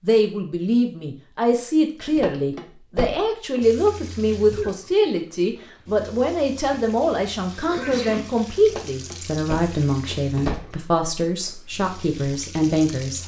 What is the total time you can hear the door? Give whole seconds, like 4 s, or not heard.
4 s.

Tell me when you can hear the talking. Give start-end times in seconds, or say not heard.
0.0-13.2.